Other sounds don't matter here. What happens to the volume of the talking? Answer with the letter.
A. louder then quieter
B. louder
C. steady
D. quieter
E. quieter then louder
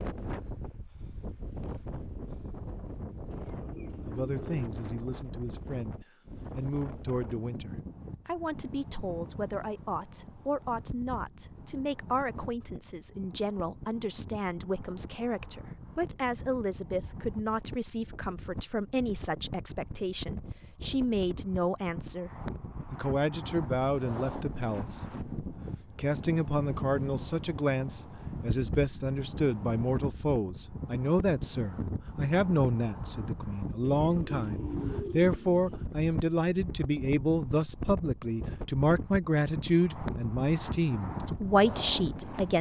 B.